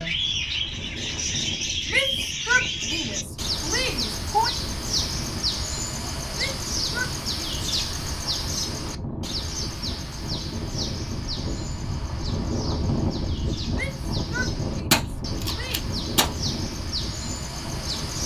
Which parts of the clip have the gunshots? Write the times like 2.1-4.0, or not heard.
14.9-16.3.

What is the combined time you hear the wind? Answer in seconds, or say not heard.
18 s.